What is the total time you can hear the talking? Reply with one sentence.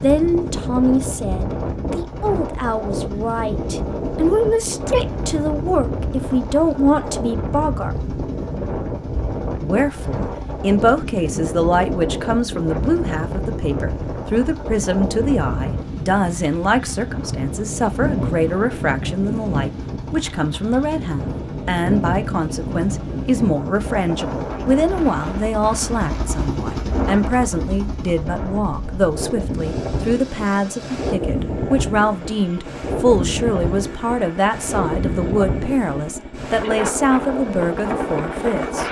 You can hear the talking for 37 seconds altogether.